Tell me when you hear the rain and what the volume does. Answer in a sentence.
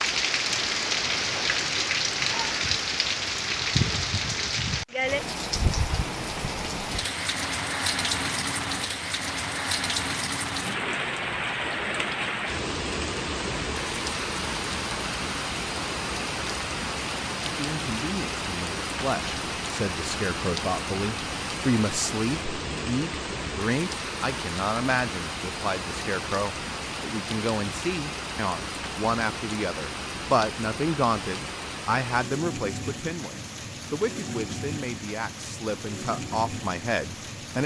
You can hear the rain from 0.0 to 37.6 s, getting quieter.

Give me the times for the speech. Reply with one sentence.
You can hear the speech from 17.6 to 37.6 s.